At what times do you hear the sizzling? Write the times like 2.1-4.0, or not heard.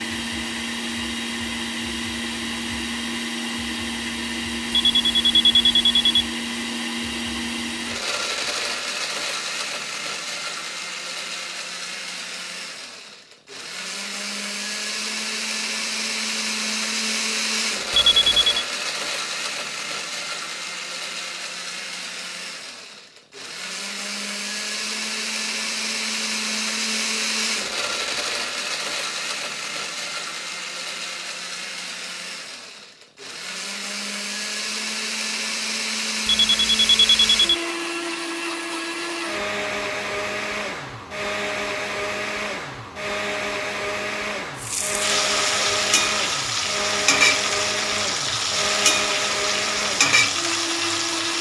44.5-51.3.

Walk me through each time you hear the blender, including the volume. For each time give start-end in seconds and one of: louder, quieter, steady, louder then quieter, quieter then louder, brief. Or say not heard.
0.0-51.3 steady.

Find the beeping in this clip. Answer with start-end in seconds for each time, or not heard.
4.7-6.2, 17.9-18.6, 36.2-37.5.